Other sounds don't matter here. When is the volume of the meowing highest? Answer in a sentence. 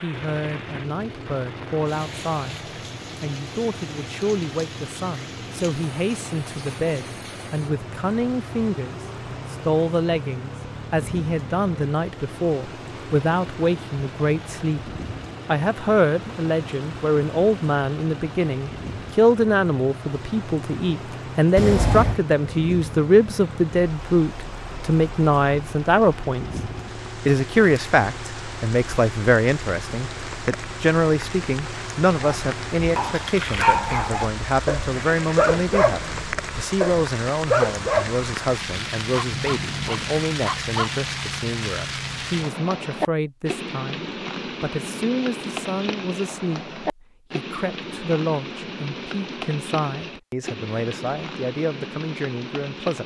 The volume of the meowing peaks at 22 seconds.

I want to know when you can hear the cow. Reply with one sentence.
The cow can't be heard in this clip.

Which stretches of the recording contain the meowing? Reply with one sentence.
You can hear the meowing from 21.6 to 22.2 s and from 39.3 to 40.3 s.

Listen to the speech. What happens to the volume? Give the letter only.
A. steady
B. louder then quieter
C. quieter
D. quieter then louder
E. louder
B.